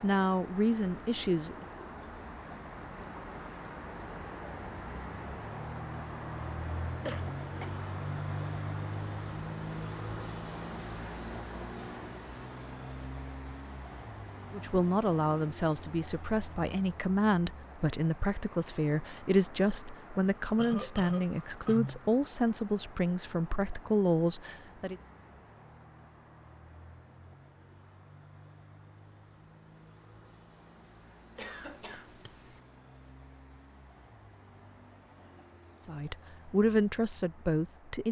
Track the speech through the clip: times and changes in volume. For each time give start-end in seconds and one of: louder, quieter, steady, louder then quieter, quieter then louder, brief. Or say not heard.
0.0-1.6 brief
14.5-24.9 steady
35.8-38.0 brief.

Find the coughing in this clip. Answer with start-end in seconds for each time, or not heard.
7.0-7.8, 20.6-22.0, 31.4-32.6.